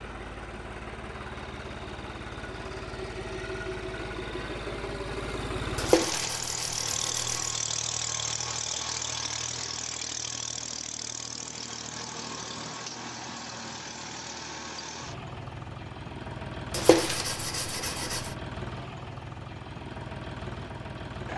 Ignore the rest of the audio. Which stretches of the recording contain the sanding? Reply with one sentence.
You can hear the sanding from 5.8 to 7.5 s and from 16.7 to 18.3 s.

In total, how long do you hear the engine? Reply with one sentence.
The engine can be heard for 21 seconds in total.